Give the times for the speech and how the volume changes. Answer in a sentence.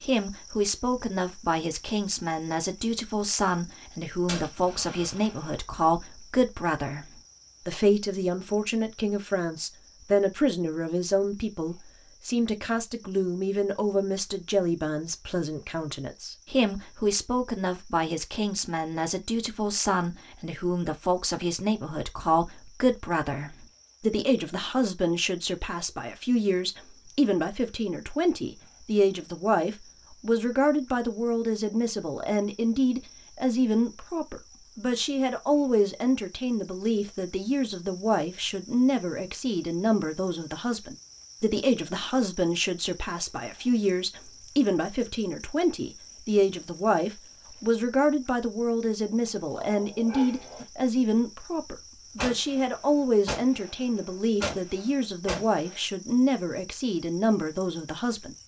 The speech can be heard from 0.0 to 58.4 s, at a steady volume.